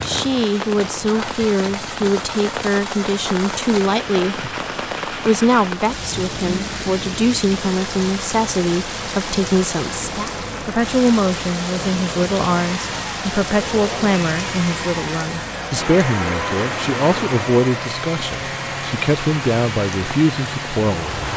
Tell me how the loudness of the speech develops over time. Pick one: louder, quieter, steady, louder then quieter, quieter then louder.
steady.